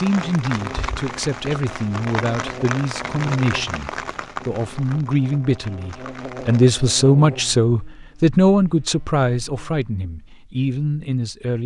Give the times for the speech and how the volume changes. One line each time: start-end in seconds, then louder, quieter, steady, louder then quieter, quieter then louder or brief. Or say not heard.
0.0-11.6 louder then quieter.